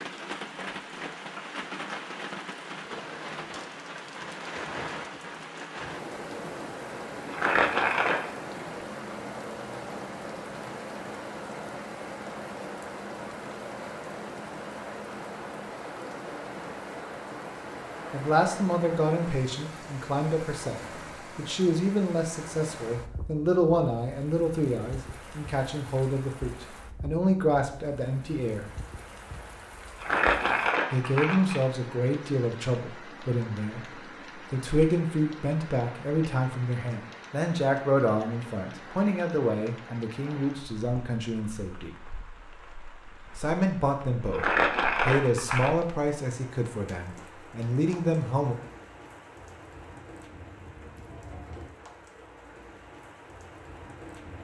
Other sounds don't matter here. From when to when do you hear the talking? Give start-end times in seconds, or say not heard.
18.1-28.6, 30.9-33.9, 34.5-41.9, 43.4-48.5.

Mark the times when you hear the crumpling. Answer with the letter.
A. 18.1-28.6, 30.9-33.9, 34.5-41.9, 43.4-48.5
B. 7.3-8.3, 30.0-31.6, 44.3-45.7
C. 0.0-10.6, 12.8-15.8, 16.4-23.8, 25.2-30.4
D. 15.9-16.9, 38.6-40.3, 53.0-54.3
B.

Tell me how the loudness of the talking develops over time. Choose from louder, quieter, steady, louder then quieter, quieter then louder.
steady.